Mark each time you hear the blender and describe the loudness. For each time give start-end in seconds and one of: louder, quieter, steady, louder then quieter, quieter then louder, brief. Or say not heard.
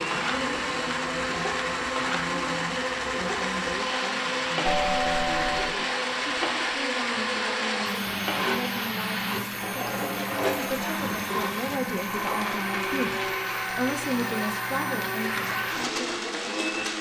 0.0-16.9 steady.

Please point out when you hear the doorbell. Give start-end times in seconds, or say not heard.
4.7-5.8.